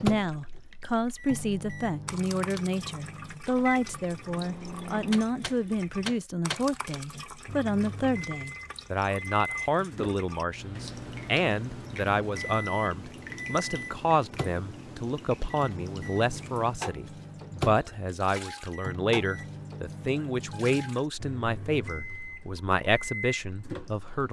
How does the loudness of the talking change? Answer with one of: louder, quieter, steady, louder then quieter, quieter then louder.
steady.